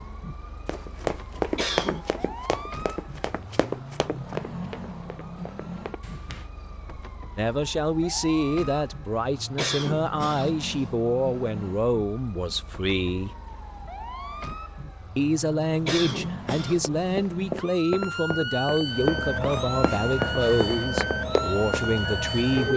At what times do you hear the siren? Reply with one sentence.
The siren can be heard from 0.0 to 22.7 s.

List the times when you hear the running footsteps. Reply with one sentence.
You can hear the running footsteps from 0.7 to 6.5 s and from 16.2 to 21.9 s.